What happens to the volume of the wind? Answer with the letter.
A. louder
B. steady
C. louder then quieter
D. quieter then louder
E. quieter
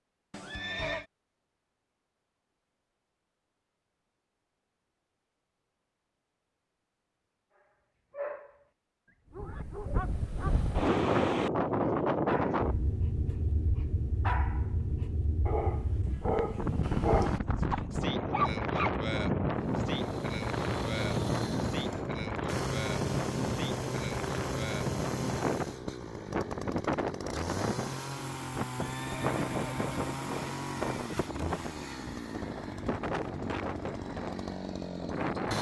E.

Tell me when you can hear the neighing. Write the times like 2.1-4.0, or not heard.
0.3-1.1, 28.6-30.4.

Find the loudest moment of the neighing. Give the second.
1 s.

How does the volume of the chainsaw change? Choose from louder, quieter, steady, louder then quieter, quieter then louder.
steady.